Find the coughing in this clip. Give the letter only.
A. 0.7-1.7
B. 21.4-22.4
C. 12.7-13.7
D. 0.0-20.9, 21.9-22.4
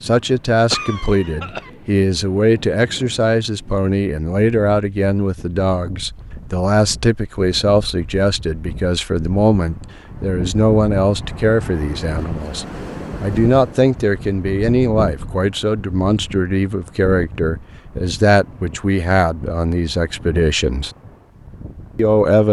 A.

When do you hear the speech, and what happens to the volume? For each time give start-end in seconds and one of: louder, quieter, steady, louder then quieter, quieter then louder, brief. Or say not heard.
0.0-20.9 steady
21.9-22.4 brief.